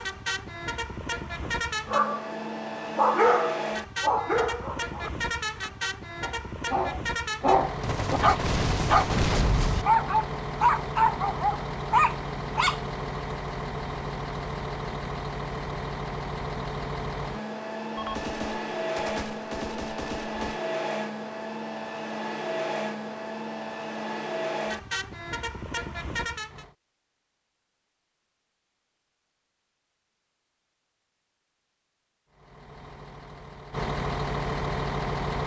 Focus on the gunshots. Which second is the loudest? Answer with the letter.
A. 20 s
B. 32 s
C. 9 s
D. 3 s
C.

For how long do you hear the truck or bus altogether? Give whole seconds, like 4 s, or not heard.
30 s.